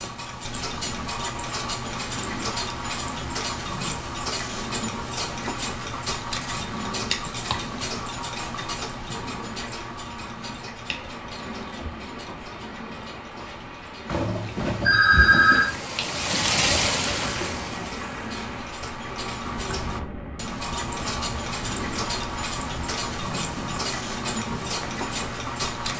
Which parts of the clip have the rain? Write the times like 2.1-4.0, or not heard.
10.8-25.8.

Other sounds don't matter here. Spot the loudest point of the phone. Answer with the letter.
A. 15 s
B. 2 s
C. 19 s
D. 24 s
A.